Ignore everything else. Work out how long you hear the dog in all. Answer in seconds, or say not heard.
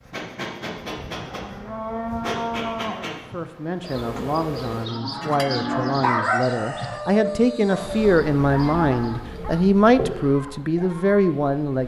6 s.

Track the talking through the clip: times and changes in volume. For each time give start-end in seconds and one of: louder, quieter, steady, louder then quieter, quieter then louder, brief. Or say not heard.
3.0-11.8 louder.